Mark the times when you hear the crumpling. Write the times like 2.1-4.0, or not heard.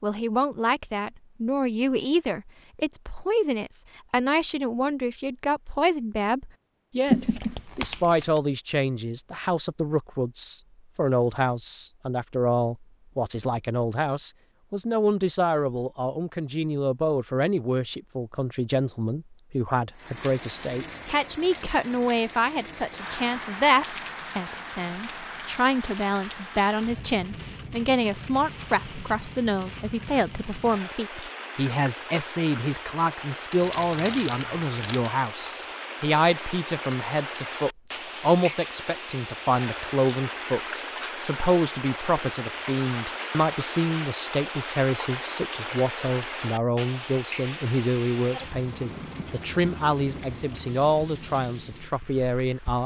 7.0-8.4, 33.6-35.1.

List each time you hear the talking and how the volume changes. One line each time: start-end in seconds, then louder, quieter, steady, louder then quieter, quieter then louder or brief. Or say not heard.
0.0-52.8 steady.